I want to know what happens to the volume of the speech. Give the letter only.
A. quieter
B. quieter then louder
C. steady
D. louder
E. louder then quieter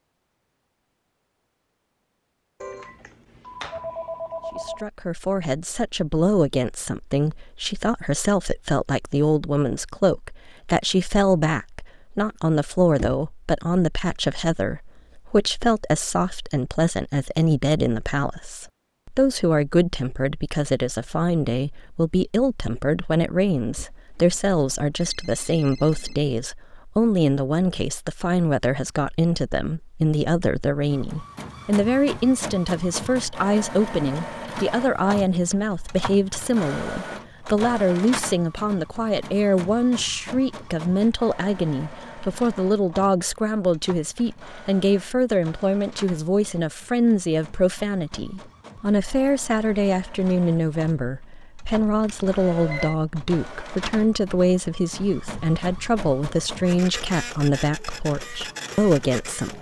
C.